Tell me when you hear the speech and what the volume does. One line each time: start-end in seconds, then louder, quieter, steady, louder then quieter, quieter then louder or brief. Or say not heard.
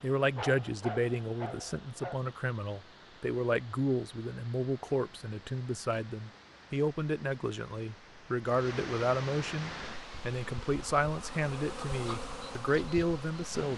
0.0-13.7 steady.